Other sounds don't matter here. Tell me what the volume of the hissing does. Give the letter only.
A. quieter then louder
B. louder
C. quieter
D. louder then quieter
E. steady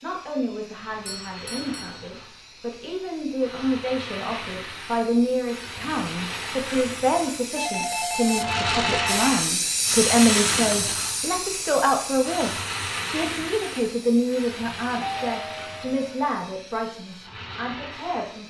D.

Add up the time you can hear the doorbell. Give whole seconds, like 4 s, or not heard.
4 s.